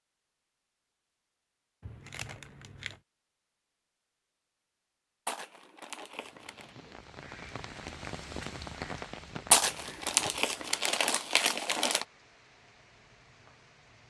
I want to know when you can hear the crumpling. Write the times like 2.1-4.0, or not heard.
1.8-3.0, 5.2-6.7, 9.5-12.1.